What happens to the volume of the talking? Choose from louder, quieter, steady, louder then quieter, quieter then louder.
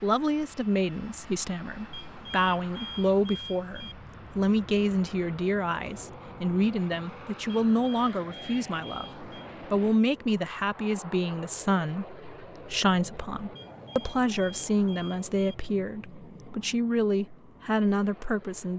steady.